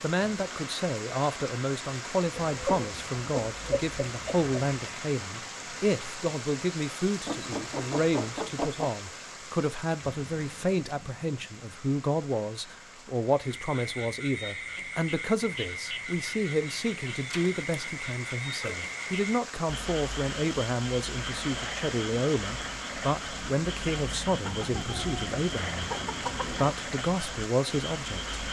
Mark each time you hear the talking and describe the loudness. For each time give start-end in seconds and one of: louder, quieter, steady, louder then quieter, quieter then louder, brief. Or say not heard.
0.0-25.8 steady
26.5-28.4 brief.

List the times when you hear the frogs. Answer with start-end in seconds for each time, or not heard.
13.2-28.4.